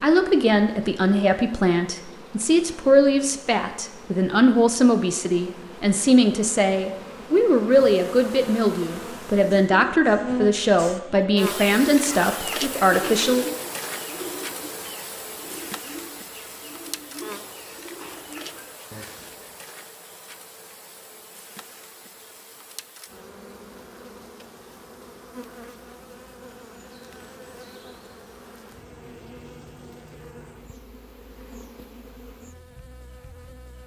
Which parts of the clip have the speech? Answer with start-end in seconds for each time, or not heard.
0.0-13.4.